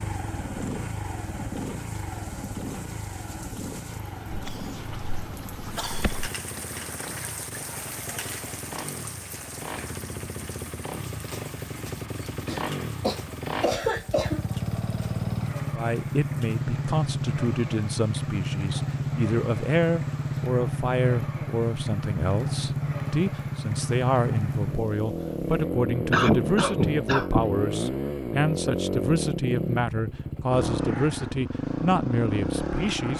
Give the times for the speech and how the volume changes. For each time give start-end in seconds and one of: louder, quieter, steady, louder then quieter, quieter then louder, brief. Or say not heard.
15.8-33.1 steady.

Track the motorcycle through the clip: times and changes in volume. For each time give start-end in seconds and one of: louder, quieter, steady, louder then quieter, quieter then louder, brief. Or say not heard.
0.0-33.1 louder.